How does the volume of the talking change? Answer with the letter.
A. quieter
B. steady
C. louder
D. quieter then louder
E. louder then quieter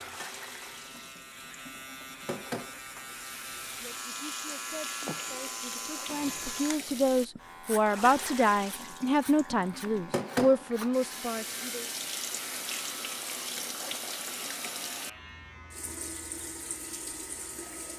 C.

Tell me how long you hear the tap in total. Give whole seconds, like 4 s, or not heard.
18 s.